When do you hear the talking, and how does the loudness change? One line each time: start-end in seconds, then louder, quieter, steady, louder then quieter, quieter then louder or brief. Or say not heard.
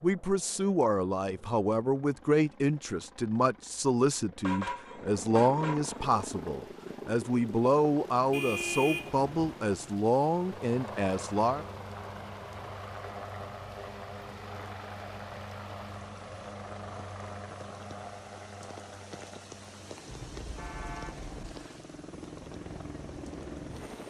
0.0-11.7 steady.